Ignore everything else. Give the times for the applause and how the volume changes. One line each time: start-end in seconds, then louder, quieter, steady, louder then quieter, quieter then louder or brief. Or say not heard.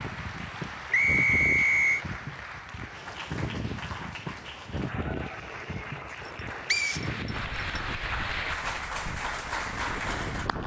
0.0-10.6 louder.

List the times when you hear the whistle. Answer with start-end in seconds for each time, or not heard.
0.9-2.0, 6.7-7.8.